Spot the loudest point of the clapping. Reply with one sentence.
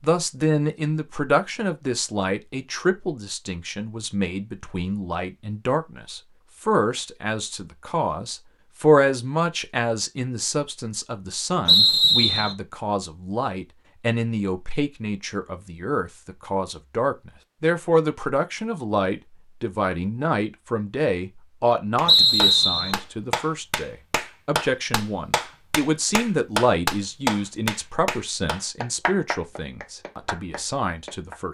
The volume of the clapping peaks at 27 seconds.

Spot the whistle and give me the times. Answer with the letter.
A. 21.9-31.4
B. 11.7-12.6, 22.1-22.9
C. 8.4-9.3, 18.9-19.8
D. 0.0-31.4
B.